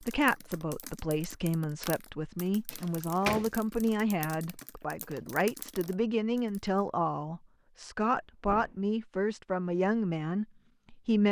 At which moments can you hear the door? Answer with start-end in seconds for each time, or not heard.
2.7-3.5, 8.0-8.9.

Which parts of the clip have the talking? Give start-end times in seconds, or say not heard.
0.0-11.2.